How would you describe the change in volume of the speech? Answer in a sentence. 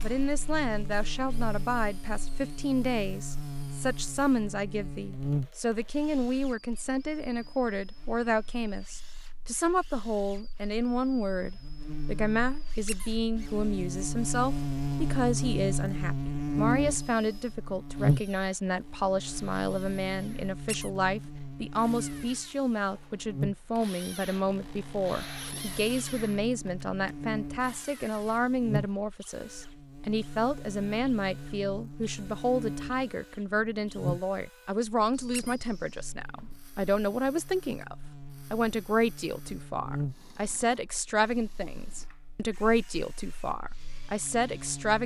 The loudness of the speech stays about the same.